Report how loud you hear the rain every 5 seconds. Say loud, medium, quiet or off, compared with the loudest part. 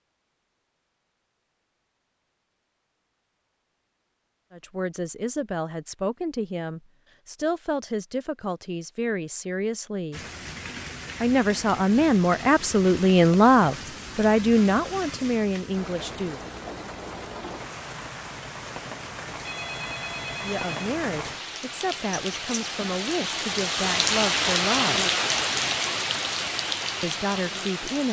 off, off, medium, medium, loud, loud.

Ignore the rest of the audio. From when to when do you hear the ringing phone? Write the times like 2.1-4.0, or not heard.
19.4-20.9.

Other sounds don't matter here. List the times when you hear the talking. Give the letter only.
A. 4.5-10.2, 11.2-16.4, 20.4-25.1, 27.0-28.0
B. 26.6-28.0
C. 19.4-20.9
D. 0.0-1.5
A.